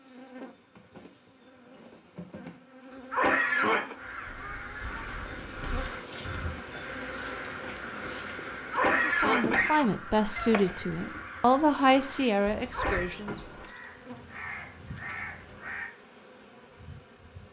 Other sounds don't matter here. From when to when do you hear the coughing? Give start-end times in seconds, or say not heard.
2.9-4.0, 8.6-9.9, 12.6-13.1.